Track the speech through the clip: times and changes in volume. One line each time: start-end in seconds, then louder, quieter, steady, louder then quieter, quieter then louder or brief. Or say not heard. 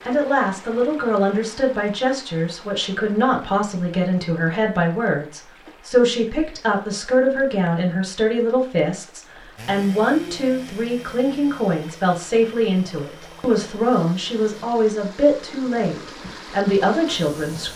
0.1-17.7 steady.